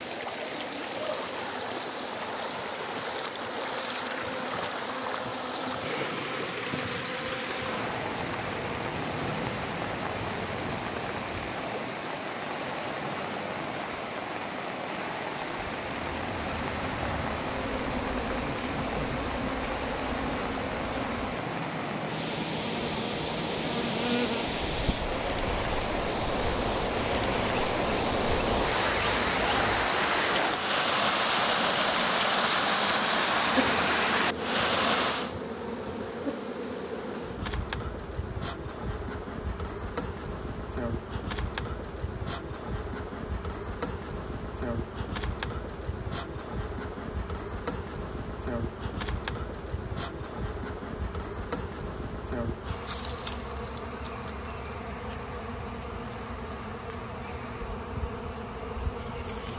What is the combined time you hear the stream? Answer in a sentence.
You can hear the stream for 35 seconds altogether.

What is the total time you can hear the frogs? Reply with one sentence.
The frogs can't be heard in this clip.